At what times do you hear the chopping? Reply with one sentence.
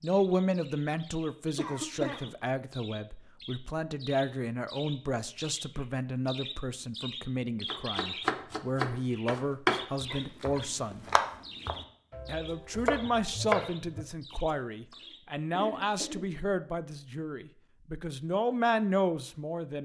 You can hear the chopping from 7.7 to 14.1 s.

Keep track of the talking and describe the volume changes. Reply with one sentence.
The volume of the talking stays about the same.